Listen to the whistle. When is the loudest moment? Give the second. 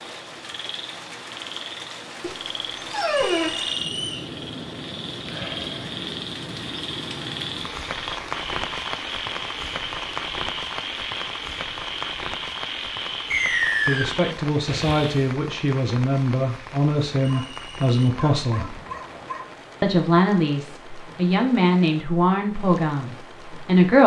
14 s.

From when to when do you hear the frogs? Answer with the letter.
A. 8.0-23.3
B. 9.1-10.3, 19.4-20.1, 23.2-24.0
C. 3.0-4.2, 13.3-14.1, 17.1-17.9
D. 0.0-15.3
D.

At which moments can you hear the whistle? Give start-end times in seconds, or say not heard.
3.0-4.2, 13.3-14.1, 17.1-17.9.